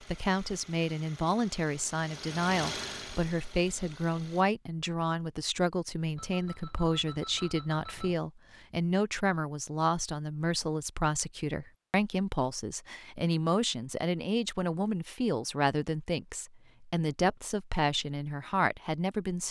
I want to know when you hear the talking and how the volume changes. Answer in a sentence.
You can hear the talking from 0.0 to 19.4 s, at a steady volume.